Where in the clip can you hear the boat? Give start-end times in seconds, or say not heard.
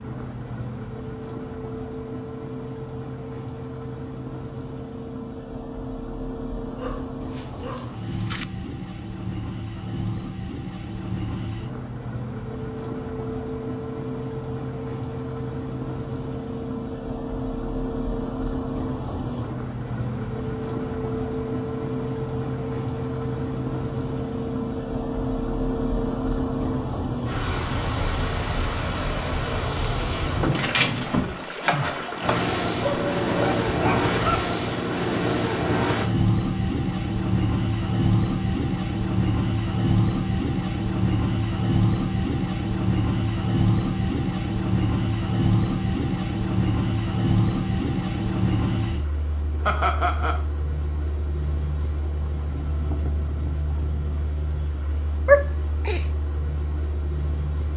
0.0-57.7.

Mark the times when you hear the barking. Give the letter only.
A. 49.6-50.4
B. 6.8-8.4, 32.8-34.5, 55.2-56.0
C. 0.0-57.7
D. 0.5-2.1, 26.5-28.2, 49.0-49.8
B.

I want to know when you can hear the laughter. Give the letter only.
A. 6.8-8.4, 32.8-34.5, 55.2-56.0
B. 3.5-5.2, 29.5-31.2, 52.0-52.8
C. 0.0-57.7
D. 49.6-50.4
D.